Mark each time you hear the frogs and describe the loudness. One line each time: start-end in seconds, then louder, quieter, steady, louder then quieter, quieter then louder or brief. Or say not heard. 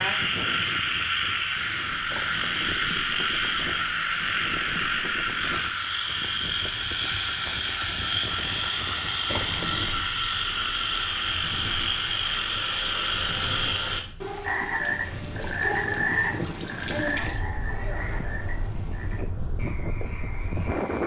0.0-21.0 quieter.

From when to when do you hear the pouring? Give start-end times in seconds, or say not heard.
2.1-2.8, 9.2-9.9, 15.3-17.4.